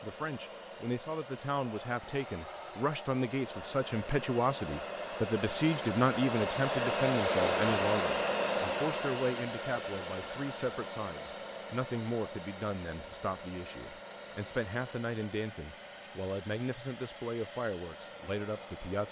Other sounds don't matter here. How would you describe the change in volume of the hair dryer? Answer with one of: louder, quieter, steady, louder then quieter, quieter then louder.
louder then quieter.